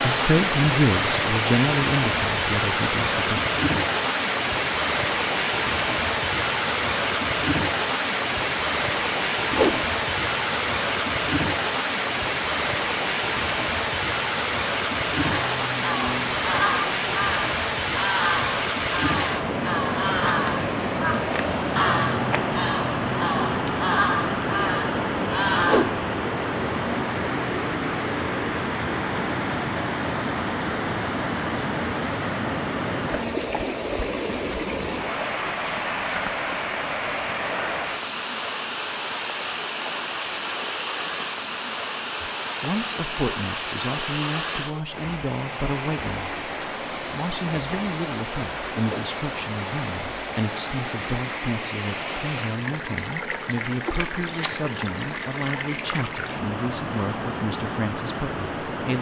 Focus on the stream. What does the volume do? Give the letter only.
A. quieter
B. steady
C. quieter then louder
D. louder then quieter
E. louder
A.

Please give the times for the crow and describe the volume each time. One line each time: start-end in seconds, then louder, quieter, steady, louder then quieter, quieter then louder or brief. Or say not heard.
15.0-26.0 steady.